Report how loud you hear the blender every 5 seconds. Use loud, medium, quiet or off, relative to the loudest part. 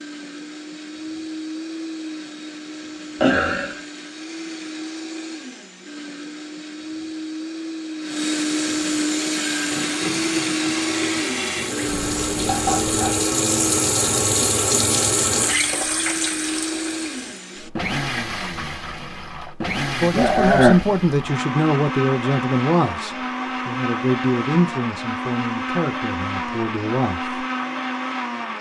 medium, loud, loud, loud, loud, loud.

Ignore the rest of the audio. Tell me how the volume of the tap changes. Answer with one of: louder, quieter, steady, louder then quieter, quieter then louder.
louder then quieter.